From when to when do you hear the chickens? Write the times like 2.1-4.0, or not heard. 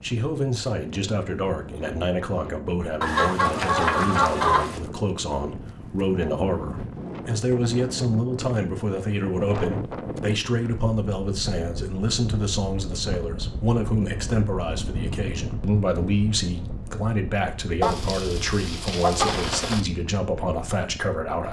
3.0-4.8, 17.8-19.9.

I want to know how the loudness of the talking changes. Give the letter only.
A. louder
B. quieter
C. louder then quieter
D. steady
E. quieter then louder
D.